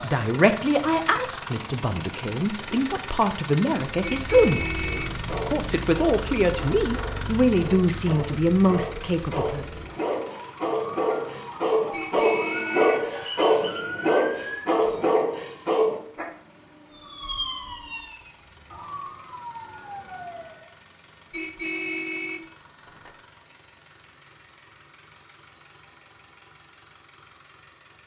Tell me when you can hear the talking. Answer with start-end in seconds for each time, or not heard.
0.0-9.7.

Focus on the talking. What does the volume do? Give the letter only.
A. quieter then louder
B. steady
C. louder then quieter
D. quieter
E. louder
B.